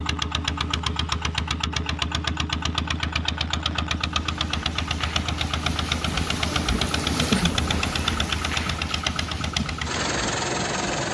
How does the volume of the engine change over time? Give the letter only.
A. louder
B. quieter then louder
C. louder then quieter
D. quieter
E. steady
E.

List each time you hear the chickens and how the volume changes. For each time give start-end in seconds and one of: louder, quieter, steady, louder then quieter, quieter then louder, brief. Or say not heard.
not heard.